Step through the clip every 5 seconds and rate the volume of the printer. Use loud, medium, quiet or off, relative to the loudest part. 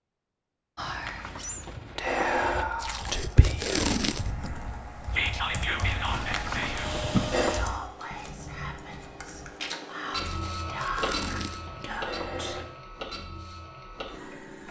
off, loud, loud.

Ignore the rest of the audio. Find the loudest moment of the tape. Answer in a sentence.
The volume of the tape peaks at 4 seconds.